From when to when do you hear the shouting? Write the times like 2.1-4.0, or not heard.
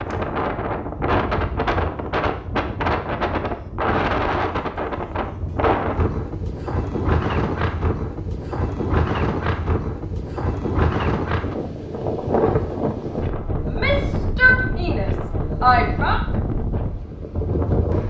13.7-16.2.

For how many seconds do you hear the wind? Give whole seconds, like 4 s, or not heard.
18 s.